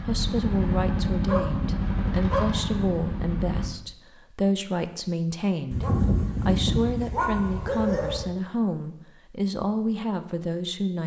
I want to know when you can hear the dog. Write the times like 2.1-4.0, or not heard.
1.2-2.5, 5.7-8.2.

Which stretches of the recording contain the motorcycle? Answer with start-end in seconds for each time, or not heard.
0.0-3.7.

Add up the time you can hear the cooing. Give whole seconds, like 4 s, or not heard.
not heard.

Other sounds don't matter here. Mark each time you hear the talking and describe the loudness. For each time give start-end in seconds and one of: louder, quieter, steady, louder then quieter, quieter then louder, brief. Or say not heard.
0.1-11.0 steady.